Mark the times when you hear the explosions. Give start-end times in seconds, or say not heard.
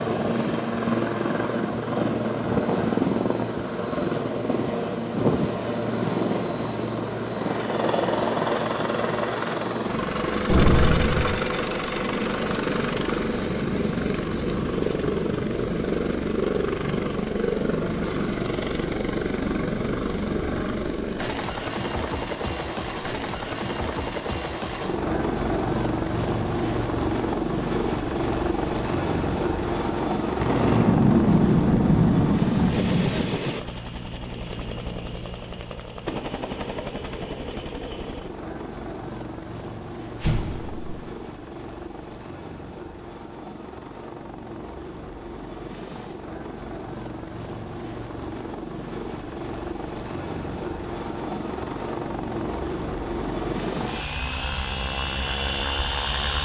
10.4-11.3, 30.4-33.3, 40.2-41.0.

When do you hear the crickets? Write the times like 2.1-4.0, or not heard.
not heard.